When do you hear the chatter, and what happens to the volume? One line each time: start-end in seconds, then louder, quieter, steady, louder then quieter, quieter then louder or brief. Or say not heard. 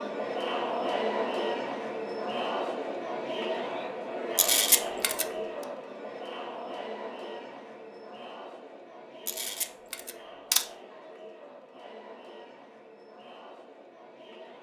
0.0-14.5 quieter.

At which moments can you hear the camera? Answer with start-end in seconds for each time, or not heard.
4.3-5.2, 9.2-10.7.